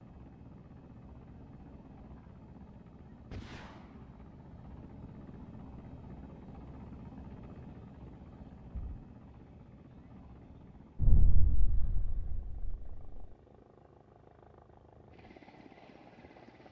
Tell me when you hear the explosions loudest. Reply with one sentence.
The loudest moment of the explosions is at 11 seconds.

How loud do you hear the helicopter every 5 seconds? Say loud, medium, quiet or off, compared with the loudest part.
loud, loud, medium, medium.